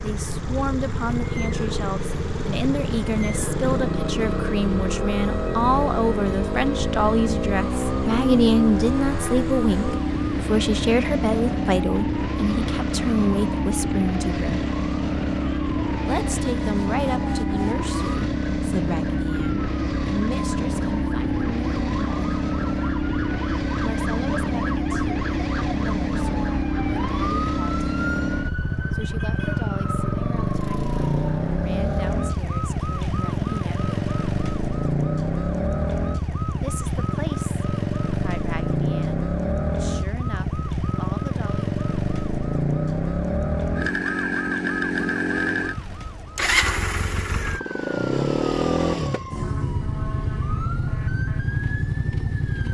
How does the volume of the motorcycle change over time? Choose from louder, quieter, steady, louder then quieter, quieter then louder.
steady.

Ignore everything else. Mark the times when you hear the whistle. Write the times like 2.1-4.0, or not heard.
not heard.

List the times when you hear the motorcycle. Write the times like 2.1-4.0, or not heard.
0.0-52.6.